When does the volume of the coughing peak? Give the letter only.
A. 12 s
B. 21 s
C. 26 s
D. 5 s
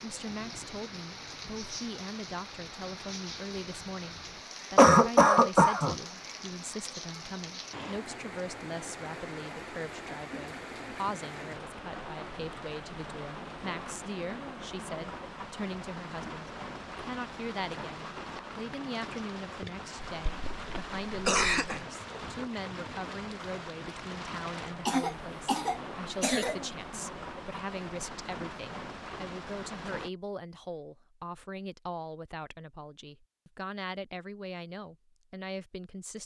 D.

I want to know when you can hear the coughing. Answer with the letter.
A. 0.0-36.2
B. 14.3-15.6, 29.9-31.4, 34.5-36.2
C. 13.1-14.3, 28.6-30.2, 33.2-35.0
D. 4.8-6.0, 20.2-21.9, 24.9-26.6
D.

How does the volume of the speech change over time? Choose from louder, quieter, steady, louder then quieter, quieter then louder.
steady.